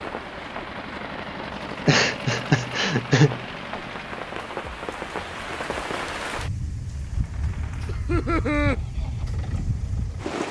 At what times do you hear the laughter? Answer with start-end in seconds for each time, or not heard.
1.9-3.5, 7.8-8.8.